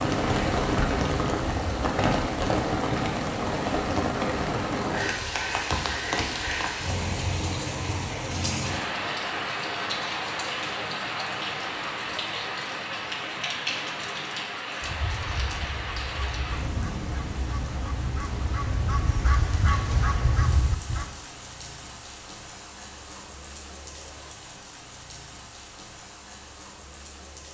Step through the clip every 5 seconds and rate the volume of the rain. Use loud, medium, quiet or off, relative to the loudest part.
loud, loud, medium, medium, quiet, quiet.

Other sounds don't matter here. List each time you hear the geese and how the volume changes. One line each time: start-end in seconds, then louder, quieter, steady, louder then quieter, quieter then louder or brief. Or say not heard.
14.8-21.1 louder.